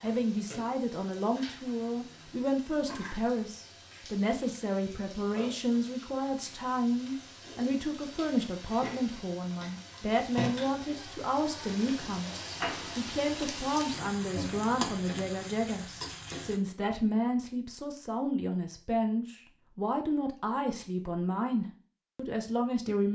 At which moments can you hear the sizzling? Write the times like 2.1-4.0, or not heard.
0.0-16.6.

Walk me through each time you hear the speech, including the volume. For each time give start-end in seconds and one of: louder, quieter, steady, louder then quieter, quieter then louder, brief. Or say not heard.
0.0-23.0 steady.